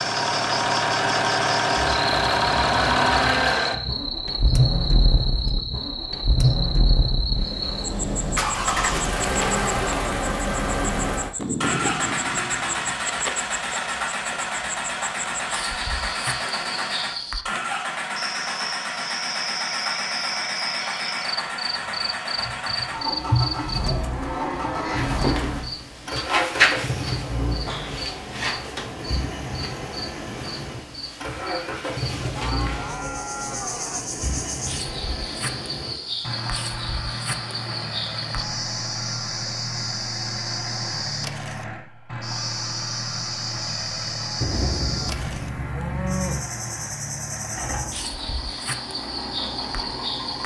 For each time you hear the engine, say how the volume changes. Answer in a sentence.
The engine can be heard from 0.0 to 50.4 s, getting quieter.